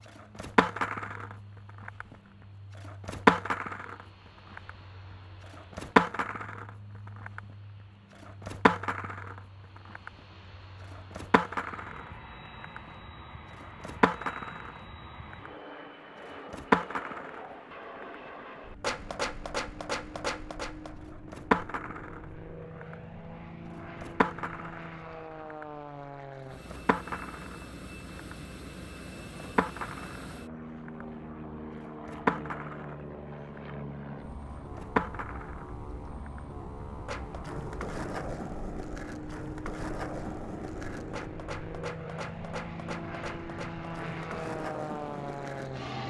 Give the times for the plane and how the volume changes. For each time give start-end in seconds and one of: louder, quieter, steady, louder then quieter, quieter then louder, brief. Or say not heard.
0.0-46.0 louder.